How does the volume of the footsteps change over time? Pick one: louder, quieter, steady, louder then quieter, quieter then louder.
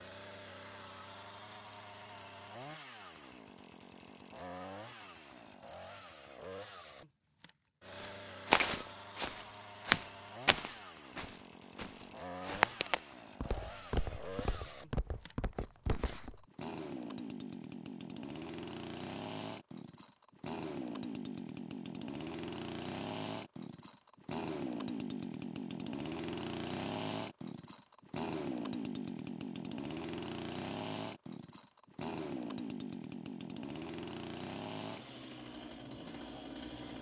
quieter.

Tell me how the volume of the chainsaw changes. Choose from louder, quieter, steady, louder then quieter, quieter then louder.
louder.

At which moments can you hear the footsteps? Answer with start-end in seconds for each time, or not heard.
8.0-16.4.